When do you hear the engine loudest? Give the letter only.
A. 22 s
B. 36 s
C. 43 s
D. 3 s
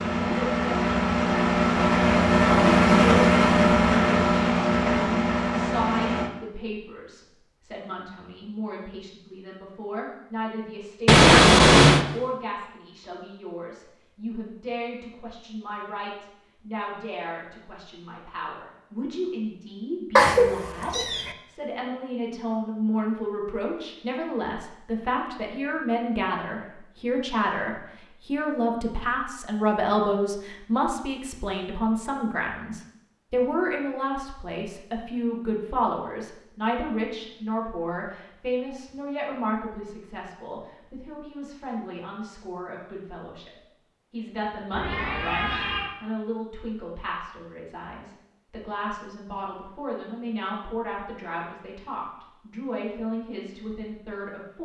D.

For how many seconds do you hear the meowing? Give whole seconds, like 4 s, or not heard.
3 s.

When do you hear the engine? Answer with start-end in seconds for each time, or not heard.
0.0-6.3.